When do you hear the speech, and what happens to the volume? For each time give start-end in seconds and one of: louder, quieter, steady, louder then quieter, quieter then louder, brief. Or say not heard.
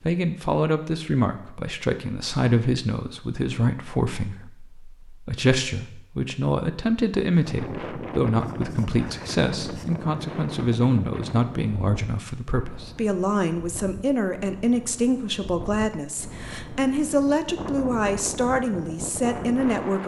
0.0-20.0 steady.